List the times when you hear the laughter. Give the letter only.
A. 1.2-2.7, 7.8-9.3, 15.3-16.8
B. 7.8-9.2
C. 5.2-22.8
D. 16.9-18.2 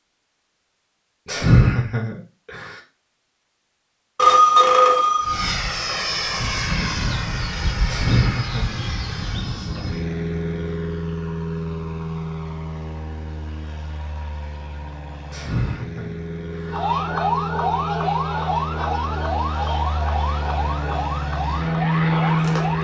A.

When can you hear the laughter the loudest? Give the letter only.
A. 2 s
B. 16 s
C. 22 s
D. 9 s
A.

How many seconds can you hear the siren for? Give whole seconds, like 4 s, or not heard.
6 s.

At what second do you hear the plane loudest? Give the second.
22 s.